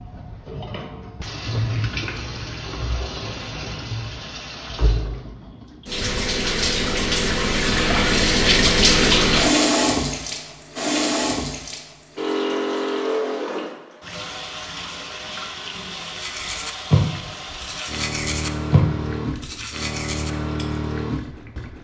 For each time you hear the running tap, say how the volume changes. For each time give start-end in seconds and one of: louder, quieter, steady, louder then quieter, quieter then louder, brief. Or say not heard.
0.0-21.7 louder then quieter.